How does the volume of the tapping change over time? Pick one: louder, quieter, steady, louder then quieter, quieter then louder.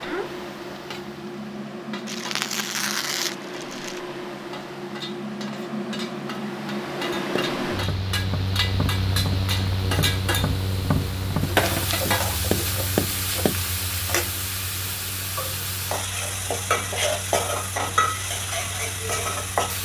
louder.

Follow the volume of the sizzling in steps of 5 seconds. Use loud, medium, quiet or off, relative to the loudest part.
quiet, medium, loud, loud.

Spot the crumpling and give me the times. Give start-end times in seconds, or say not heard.
2.0-4.0.